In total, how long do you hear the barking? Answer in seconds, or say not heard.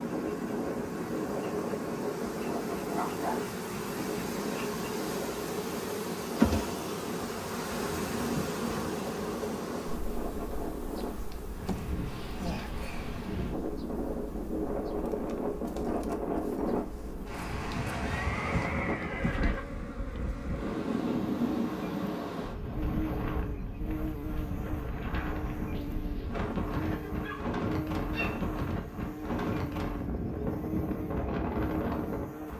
2 s.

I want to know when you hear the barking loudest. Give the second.
3 s.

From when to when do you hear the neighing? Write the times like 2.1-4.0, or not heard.
18.1-19.7.